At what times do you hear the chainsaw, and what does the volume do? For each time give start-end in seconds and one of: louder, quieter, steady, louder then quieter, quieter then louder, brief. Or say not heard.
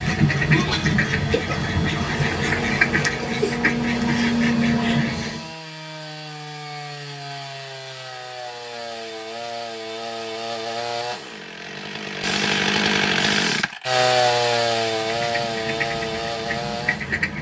0.0-17.3 louder.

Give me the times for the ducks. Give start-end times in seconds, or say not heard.
0.0-5.5, 14.9-17.3.